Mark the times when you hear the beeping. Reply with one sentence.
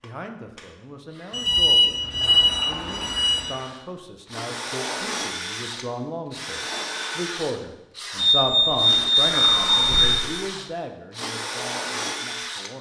The beeping can be heard from 1.3 to 3.5 s and from 8.2 to 10.2 s.